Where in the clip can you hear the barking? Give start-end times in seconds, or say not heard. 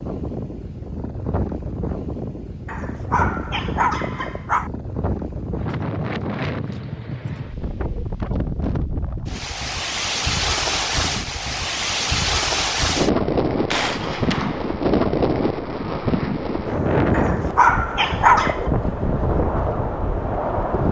2.6-4.7, 17.1-18.7.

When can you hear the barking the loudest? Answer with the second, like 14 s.
18 s.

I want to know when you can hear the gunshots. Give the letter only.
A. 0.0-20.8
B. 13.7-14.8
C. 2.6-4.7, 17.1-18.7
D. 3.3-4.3
B.